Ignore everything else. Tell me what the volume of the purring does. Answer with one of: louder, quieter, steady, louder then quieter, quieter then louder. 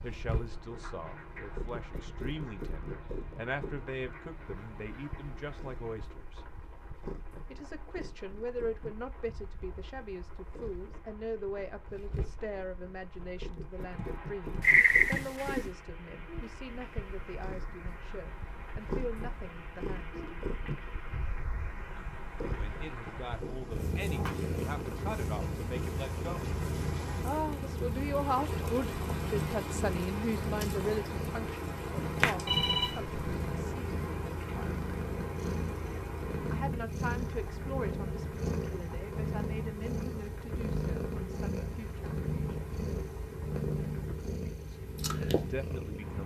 louder.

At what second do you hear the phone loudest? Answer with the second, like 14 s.
15 s.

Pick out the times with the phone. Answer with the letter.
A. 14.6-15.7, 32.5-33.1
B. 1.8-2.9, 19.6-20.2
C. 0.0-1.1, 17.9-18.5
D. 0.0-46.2
A.